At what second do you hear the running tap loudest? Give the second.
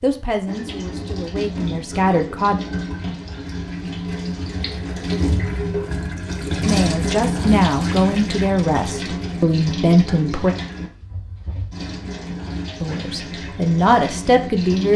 7 s.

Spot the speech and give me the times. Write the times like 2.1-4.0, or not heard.
0.0-2.6, 6.7-10.6, 12.8-14.9.